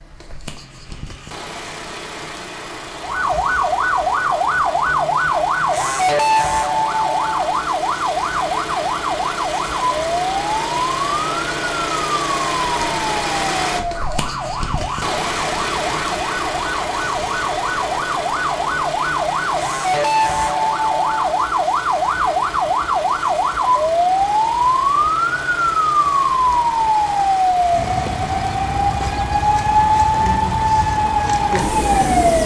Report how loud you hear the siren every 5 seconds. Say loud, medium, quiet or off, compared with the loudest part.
loud, loud, medium, medium, loud, loud, loud.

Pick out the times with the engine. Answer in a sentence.
You can hear the engine from 0.0 to 32.4 s.